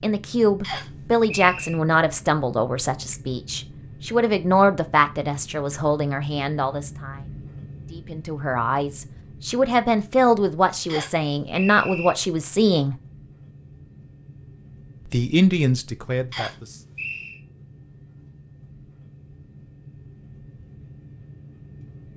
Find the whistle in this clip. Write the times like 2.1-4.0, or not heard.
0.6-1.8, 10.8-12.2, 16.3-17.4.